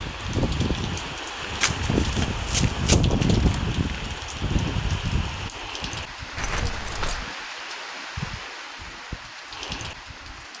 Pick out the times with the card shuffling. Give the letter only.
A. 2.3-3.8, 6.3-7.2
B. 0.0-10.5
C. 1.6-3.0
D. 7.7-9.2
C.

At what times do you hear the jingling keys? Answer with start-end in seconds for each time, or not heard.
2.3-3.8, 6.3-7.2.